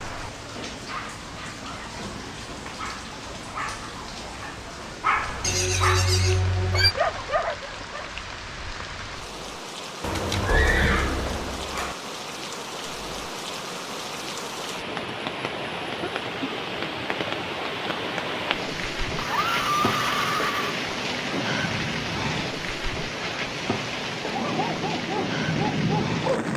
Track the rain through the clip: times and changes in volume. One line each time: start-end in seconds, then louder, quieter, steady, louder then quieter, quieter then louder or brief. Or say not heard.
0.0-26.5 louder.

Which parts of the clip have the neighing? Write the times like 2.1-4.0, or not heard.
5.4-7.0, 10.0-11.9, 19.1-20.8.